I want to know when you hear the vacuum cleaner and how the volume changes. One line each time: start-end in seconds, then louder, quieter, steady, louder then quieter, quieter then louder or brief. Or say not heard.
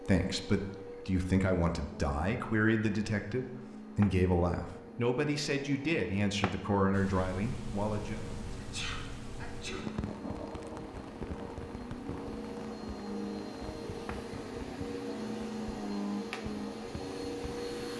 0.0-17.9 louder.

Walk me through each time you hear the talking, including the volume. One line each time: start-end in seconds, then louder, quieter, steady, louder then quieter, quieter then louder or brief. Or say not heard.
0.0-8.2 steady.